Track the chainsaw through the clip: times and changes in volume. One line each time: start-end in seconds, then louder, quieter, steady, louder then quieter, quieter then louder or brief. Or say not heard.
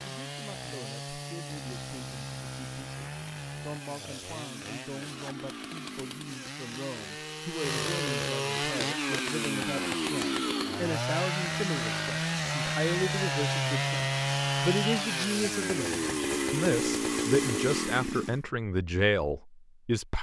0.0-18.5 louder.